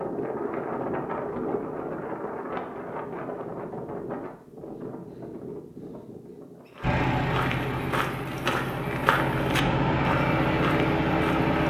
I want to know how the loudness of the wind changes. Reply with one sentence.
The loudness of the wind goes down.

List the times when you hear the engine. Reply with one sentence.
You can hear the engine from 6.8 to 11.6 s.